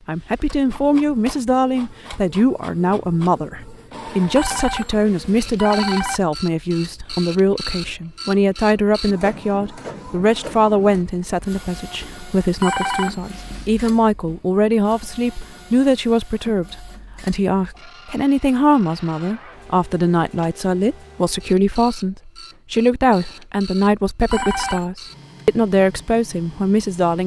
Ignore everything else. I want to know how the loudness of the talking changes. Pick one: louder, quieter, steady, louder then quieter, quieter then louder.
steady.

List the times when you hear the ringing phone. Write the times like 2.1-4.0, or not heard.
4.3-6.2, 12.6-13.9, 24.2-24.9.